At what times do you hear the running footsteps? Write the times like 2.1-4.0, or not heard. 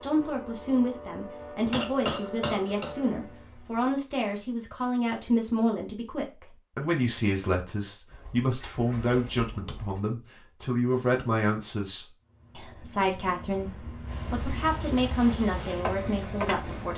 not heard.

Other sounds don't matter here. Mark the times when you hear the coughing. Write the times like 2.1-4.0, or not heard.
1.7-3.0.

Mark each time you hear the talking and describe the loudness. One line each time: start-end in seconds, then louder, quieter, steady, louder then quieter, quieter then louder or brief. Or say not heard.
0.0-16.9 steady.